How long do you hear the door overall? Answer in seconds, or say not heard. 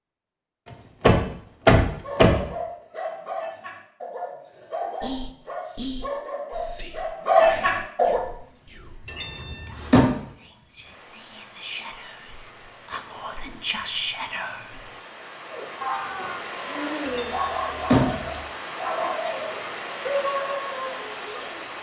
4 s.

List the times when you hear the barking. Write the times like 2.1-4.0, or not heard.
2.0-8.2, 15.5-21.6.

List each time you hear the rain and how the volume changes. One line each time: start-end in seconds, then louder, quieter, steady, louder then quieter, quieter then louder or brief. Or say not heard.
8.2-21.7 louder.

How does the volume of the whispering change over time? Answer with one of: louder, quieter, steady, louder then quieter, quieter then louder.
quieter then louder.